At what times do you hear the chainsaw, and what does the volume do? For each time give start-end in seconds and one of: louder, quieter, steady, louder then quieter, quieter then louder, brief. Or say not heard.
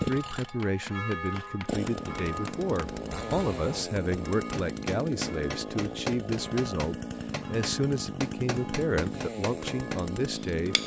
0.0-10.8 steady.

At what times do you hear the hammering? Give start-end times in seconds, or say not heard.
0.0-10.8.